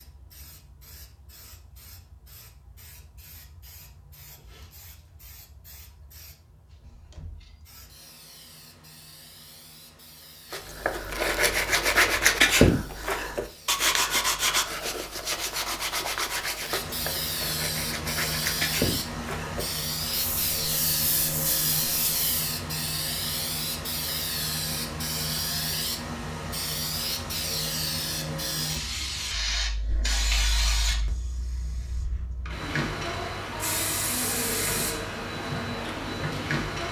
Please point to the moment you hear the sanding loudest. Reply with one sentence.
The loudest moment of the sanding is at 13 seconds.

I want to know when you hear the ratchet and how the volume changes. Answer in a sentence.
You can't hear the ratchet here.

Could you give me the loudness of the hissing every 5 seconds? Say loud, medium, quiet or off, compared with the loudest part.
quiet, quiet, quiet, loud, loud, loud, loud, loud.